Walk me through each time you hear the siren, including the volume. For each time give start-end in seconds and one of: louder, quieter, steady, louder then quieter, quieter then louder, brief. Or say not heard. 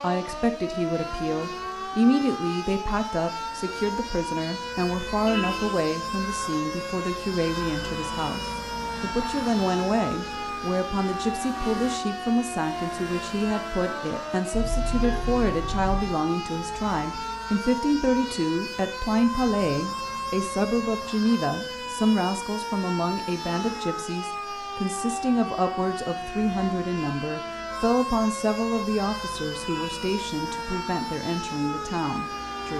0.0-32.7 steady.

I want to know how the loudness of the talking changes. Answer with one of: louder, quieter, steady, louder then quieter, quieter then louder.
steady.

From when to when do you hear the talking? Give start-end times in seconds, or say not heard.
0.0-32.7.